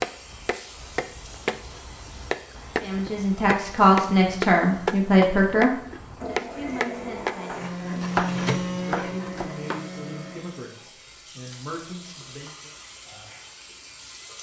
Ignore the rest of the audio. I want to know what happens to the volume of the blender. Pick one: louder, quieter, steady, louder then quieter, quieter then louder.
louder then quieter.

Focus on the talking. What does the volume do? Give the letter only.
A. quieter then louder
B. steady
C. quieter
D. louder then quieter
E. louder
C.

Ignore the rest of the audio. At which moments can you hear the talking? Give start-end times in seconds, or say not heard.
2.8-8.1, 8.8-12.8.